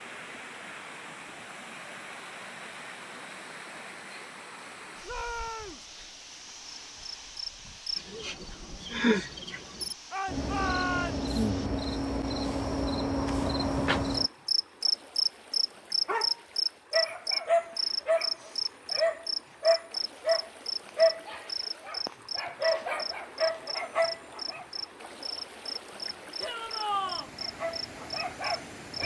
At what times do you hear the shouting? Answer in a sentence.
You can hear the shouting from 5.0 to 5.8 s, from 10.1 to 11.3 s and from 26.4 to 27.3 s.